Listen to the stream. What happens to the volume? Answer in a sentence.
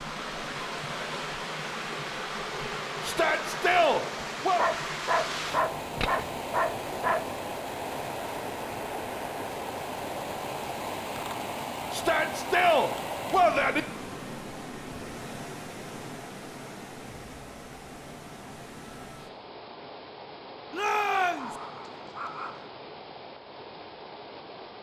The loudness of the stream goes down.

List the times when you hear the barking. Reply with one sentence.
You can hear the barking from 4.5 to 7.2 s and from 20.8 to 22.7 s.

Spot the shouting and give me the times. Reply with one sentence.
The shouting can be heard from 3.0 to 4.7 s, from 11.9 to 13.8 s and from 20.7 to 21.6 s.